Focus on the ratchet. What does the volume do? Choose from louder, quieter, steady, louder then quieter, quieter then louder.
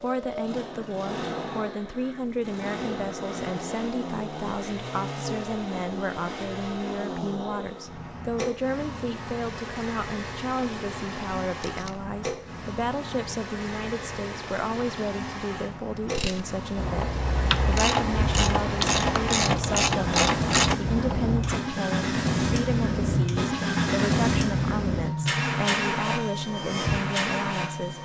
louder.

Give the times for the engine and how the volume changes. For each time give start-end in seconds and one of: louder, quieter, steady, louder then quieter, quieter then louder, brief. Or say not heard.
0.0-28.0 louder.